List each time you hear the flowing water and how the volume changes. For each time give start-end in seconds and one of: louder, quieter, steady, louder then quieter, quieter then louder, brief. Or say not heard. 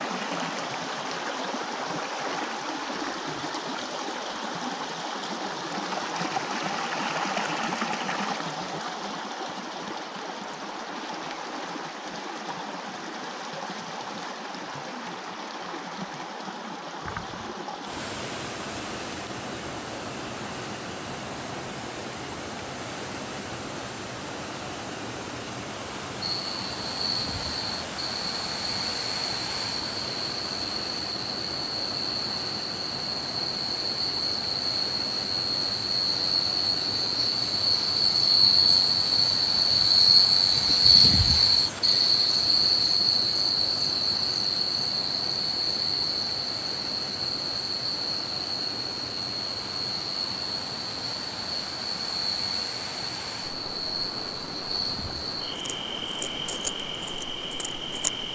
0.0-58.3 quieter.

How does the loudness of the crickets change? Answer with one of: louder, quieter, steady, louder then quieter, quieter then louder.
louder then quieter.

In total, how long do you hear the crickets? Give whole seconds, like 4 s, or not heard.
32 s.